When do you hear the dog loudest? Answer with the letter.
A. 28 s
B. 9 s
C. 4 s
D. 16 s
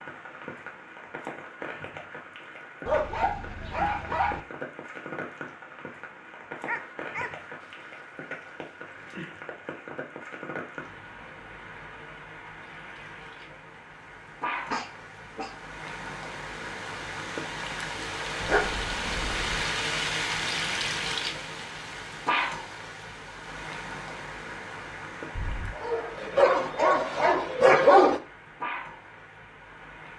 A.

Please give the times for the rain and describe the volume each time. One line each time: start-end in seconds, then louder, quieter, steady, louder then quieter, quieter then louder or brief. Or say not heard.
0.0-30.1 louder then quieter.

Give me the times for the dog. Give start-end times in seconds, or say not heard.
2.9-4.4, 6.7-9.2, 14.7-15.6, 18.4-19.6, 25.4-28.2.